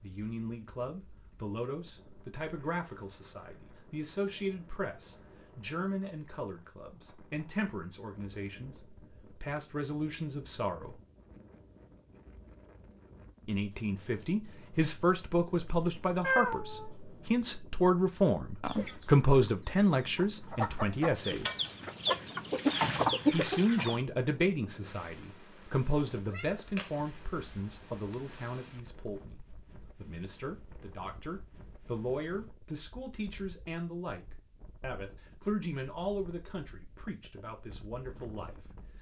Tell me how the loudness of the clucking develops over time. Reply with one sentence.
The loudness of the clucking goes up.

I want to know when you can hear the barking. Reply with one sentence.
The barking can't be heard in this clip.